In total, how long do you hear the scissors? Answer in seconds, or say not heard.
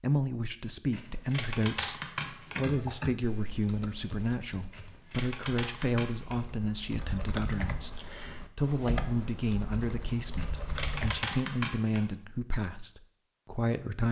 5 s.